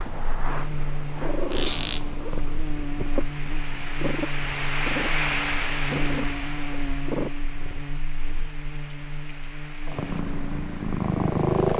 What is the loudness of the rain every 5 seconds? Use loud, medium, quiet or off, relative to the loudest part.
loud, loud, quiet.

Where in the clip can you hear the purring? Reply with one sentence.
The purring can be heard from 0.0 to 7.8 s and from 9.8 to 11.7 s.